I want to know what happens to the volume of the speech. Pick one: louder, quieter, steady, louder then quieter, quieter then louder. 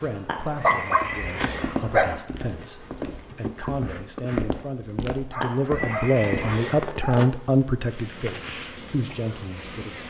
louder then quieter.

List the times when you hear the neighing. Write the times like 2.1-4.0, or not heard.
0.2-2.2, 5.4-6.9.